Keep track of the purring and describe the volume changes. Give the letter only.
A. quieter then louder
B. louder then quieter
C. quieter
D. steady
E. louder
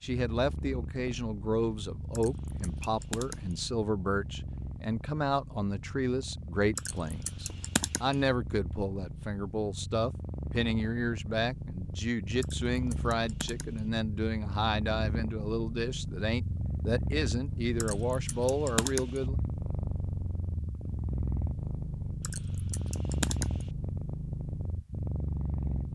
E.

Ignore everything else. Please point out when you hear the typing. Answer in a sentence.
The typing can be heard from 2.1 to 3.6 s, from 6.8 to 8.2 s, from 12.4 to 13.8 s, from 17.8 to 19.2 s and from 22.2 to 23.7 s.